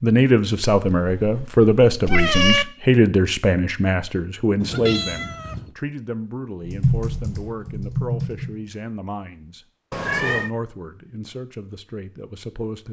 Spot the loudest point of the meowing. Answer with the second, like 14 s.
2 s.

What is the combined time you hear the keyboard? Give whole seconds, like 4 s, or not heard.
2 s.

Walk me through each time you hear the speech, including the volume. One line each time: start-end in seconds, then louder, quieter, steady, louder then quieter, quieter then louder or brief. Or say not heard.
0.0-12.8 quieter.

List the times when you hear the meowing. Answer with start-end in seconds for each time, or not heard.
0.8-2.6, 4.6-5.8, 9.9-10.5.